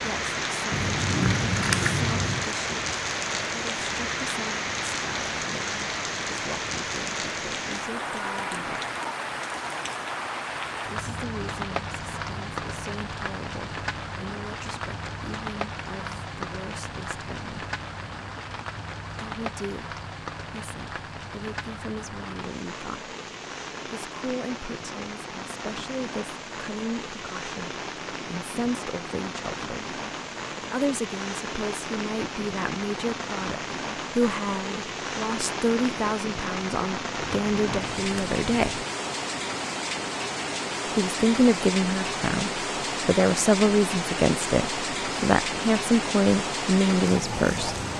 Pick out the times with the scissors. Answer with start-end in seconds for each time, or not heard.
0.7-2.5, 37.1-39.0.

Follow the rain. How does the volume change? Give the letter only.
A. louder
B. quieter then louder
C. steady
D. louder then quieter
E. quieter
B.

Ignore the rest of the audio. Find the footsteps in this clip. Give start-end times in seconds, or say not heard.
not heard.